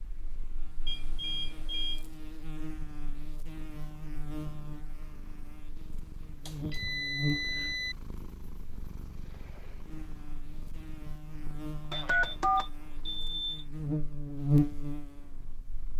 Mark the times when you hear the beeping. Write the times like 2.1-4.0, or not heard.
0.8-2.0, 6.5-8.0, 11.9-13.7.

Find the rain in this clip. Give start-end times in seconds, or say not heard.
not heard.